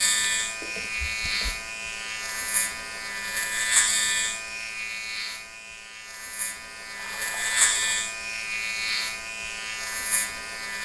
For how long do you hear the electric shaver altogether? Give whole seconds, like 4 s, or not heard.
11 s.